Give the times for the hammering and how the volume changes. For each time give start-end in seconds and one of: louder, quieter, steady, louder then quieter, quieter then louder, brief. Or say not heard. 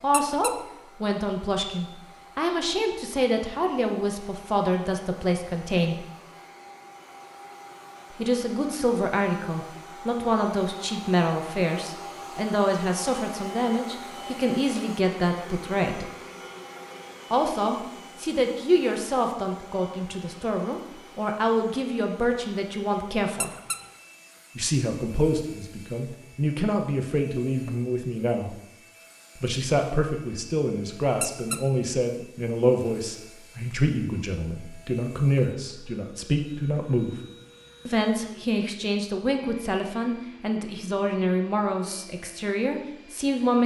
not heard.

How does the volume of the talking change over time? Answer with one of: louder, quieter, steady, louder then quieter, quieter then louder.
steady.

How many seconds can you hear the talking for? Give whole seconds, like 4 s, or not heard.
38 s.